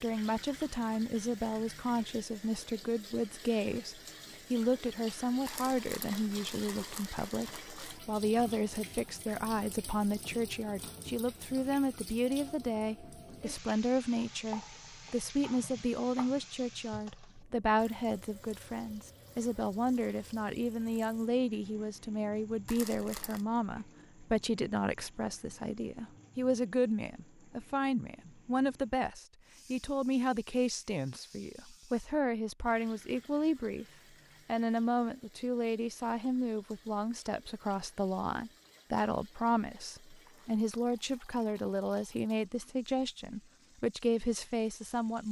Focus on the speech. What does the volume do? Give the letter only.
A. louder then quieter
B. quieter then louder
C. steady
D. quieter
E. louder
C.